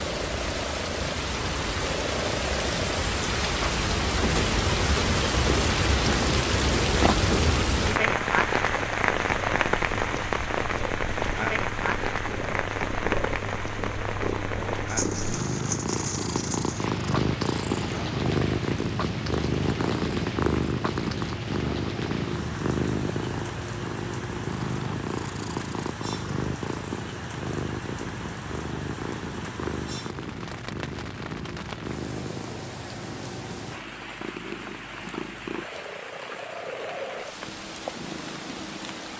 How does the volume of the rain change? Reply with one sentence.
The loudness of the rain goes down.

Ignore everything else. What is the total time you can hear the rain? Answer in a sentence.
The rain can be heard for 39 seconds in total.